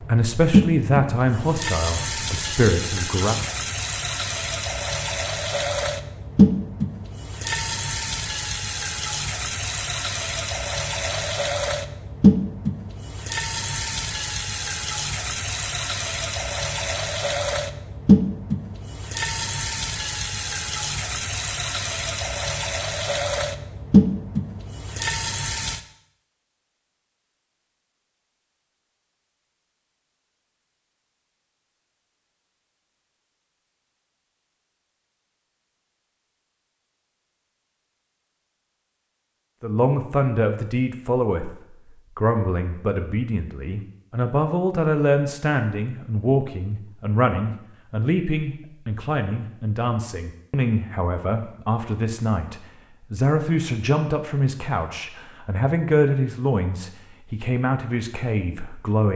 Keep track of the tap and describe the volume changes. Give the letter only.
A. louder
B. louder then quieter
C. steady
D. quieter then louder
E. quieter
C.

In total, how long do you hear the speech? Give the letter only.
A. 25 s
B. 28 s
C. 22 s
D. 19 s
C.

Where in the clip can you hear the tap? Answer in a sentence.
You can hear the tap from 0.0 to 25.9 s.